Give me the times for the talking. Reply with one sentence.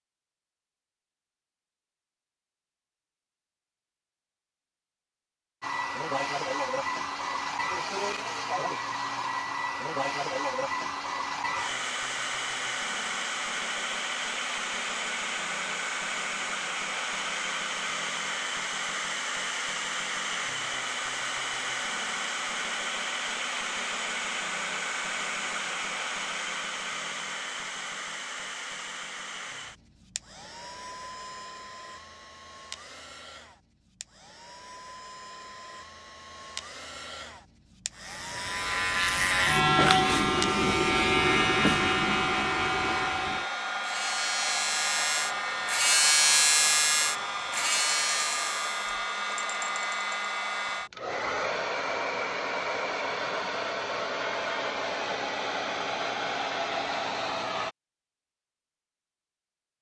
You can't hear the talking here.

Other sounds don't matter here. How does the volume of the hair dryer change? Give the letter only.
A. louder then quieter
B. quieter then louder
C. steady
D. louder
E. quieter
B.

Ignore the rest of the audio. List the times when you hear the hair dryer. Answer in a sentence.
You can hear the hair dryer from 5.6 to 57.8 s.